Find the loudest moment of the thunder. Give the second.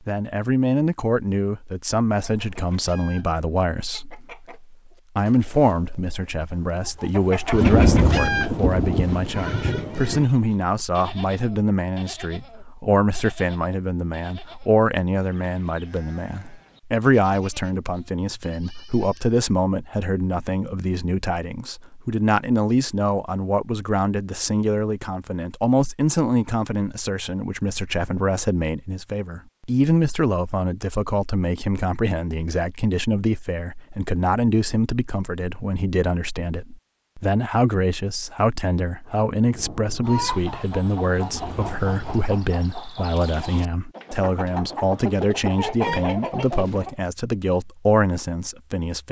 8 s.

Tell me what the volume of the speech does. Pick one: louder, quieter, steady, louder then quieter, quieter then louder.
steady.